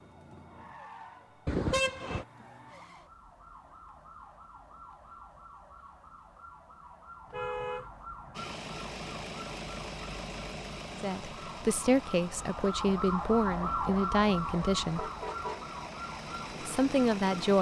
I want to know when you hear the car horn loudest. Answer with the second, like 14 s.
2 s.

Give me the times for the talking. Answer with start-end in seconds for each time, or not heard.
11.0-15.1, 16.6-17.5.